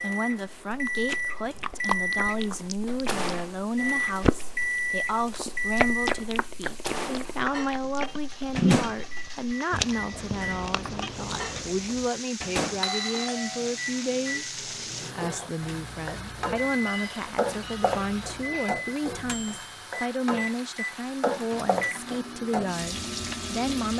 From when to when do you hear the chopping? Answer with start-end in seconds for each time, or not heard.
not heard.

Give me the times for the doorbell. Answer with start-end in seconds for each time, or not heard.
12.8-13.8.